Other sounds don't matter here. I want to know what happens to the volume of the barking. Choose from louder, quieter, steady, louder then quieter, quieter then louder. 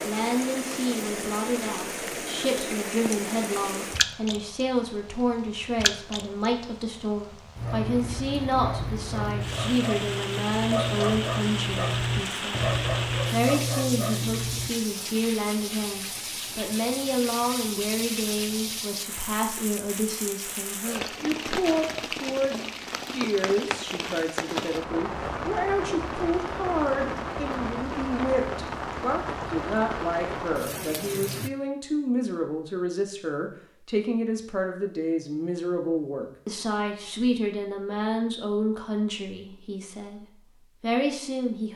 louder.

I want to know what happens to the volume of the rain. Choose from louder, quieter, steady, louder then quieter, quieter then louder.
steady.